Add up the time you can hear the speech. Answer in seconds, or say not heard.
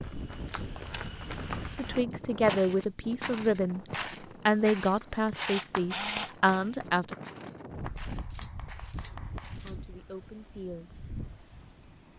6 s.